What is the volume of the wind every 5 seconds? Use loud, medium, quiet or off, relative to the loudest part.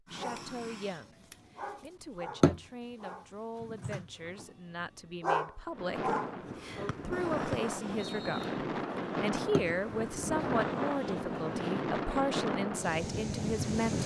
off, loud, loud.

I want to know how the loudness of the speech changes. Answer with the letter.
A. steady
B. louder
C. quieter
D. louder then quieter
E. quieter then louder
B.